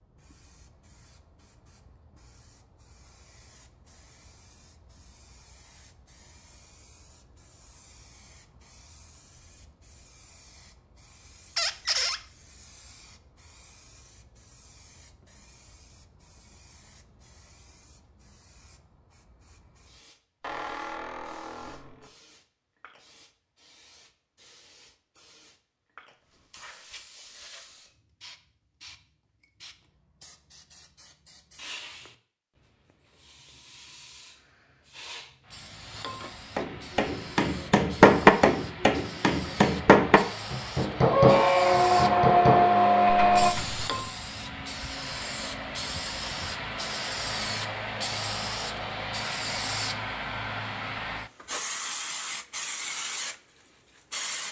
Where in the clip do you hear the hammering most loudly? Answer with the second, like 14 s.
38 s.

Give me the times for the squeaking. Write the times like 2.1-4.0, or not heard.
11.6-12.2, 20.4-22.1, 41.1-43.5.